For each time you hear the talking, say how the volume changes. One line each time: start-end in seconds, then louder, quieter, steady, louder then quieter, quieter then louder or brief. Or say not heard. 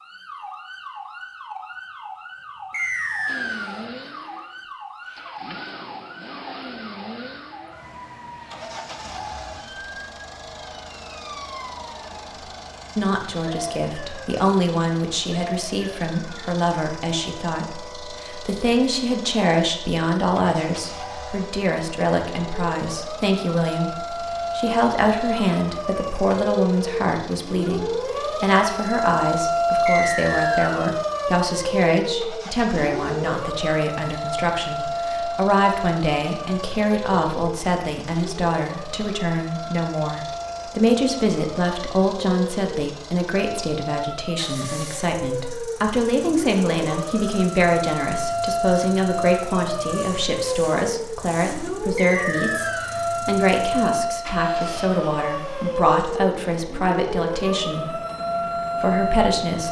12.9-58.0 steady
58.8-59.6 brief.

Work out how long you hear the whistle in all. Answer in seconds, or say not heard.
3 s.